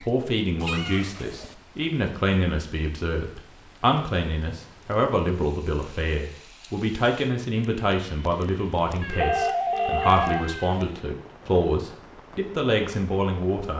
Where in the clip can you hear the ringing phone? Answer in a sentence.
You can hear the ringing phone from 8.9 to 10.2 s.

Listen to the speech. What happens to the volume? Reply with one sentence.
The volume of the speech stays about the same.